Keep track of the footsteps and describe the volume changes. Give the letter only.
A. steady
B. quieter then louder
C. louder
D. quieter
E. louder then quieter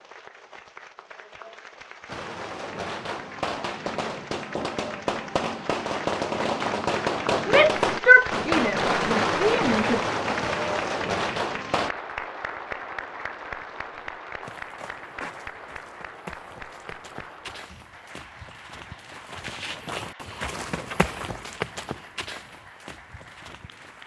E.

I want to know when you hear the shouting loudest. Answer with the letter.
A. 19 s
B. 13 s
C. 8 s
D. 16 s
C.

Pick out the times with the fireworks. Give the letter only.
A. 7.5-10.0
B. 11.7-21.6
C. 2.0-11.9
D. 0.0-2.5
C.